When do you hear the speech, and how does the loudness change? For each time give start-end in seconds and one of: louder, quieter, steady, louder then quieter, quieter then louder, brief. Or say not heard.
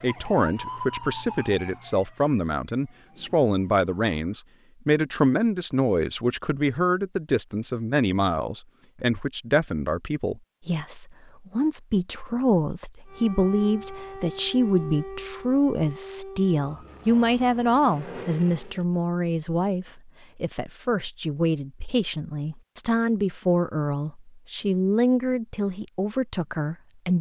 0.0-27.1 steady.